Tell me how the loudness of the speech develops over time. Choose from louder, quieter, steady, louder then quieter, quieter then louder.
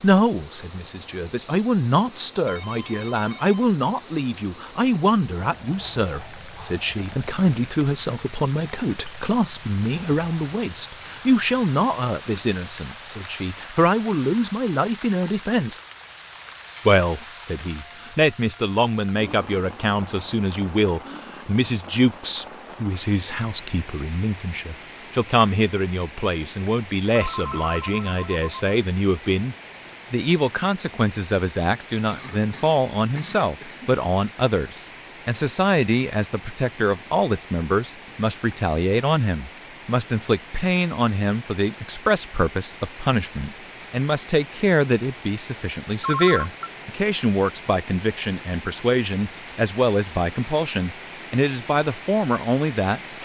steady.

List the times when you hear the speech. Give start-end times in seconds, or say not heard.
0.0-15.8, 16.9-53.0.